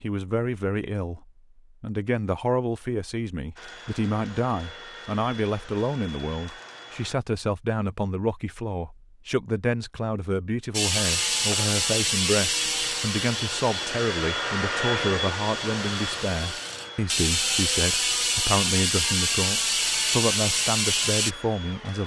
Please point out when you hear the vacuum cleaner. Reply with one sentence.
The vacuum cleaner can be heard from 3.5 to 7.2 s and from 11.0 to 22.0 s.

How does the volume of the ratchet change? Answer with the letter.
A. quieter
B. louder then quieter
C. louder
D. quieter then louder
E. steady
D.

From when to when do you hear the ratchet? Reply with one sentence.
The ratchet can be heard from 10.7 to 21.4 s.